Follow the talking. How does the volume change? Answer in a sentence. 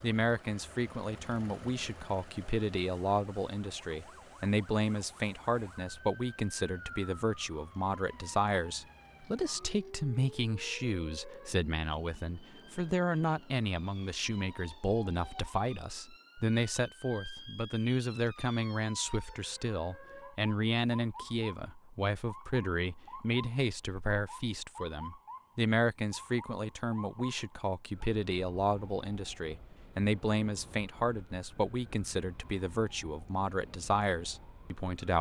The loudness of the talking stays about the same.